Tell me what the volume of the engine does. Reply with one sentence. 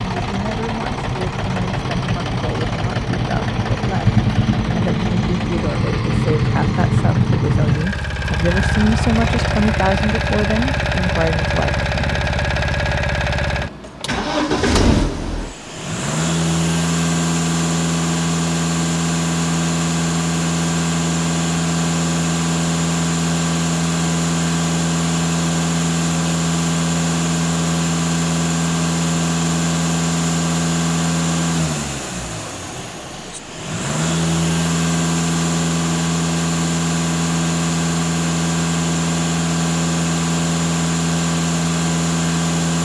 The volume of the engine stays about the same.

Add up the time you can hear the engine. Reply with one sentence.
The engine can be heard for 43 seconds in total.